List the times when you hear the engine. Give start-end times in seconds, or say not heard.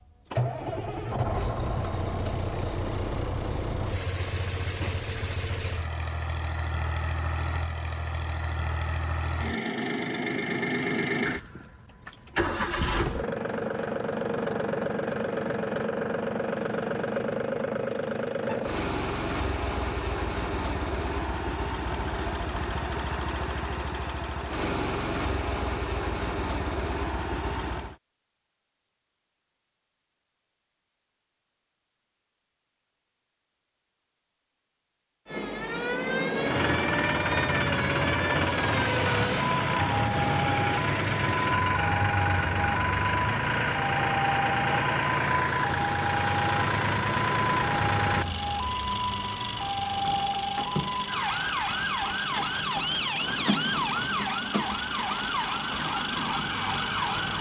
0.1-27.9, 36.4-57.3.